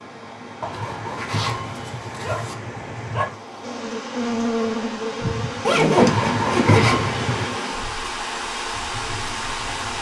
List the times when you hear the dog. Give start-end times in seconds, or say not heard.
0.6-3.4, 6.0-7.5.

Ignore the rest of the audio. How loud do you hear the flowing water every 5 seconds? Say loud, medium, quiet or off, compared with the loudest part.
medium, loud.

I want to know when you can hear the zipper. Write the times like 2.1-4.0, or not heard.
0.7-2.5, 5.6-7.0.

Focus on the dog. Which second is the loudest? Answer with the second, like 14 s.
7 s.